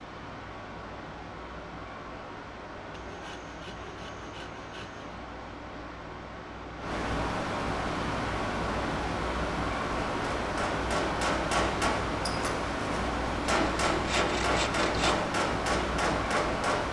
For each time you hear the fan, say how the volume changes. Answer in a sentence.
You can hear the fan from 0.0 to 16.8 s, getting louder.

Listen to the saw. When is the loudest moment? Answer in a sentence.
The loudest moment of the saw is at 15 seconds.